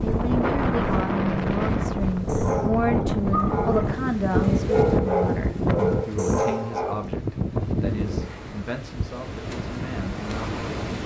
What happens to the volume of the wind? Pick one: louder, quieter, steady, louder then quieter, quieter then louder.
quieter.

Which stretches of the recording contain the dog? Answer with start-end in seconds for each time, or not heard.
2.2-7.1.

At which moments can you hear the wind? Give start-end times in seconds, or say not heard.
0.0-11.0.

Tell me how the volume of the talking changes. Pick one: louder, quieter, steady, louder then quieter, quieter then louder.
quieter.